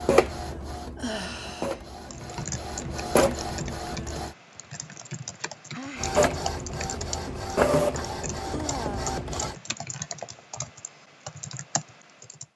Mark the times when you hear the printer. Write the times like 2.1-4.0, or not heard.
0.0-4.3, 6.0-9.6.